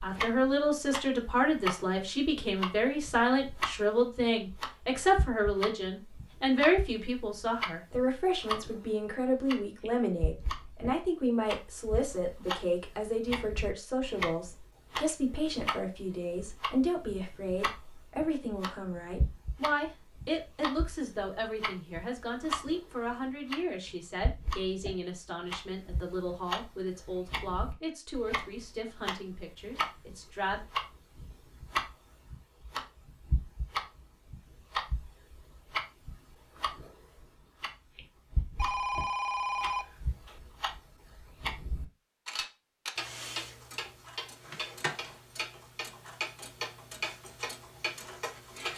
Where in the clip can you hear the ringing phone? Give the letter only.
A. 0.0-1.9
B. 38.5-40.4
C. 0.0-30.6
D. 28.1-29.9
B.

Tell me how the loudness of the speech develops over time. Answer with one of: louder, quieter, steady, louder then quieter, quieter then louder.
quieter.